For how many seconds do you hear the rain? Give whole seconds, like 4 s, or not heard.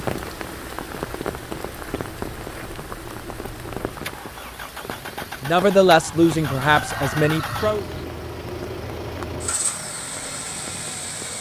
11 s.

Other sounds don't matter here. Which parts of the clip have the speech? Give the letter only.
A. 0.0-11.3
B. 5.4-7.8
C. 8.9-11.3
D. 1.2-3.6
B.